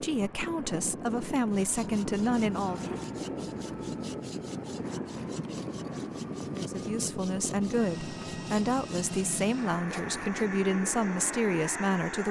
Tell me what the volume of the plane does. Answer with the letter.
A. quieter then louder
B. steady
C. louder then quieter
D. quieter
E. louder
B.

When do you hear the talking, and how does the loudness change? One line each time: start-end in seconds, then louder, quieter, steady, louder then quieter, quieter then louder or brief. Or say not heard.
0.0-3.0 brief
6.5-12.2 steady.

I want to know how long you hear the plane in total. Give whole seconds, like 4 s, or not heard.
12 s.